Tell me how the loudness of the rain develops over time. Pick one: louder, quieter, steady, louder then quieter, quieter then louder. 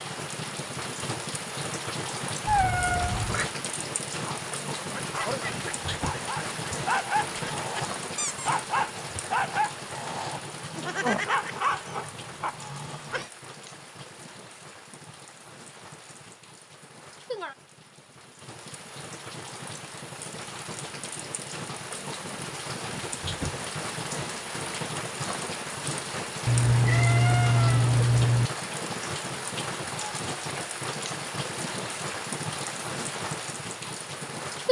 quieter then louder.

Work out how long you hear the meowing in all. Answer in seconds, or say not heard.
3 s.